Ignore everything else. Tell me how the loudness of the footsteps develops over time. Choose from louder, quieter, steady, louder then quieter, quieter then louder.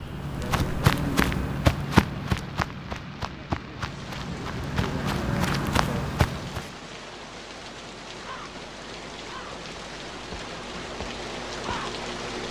quieter then louder.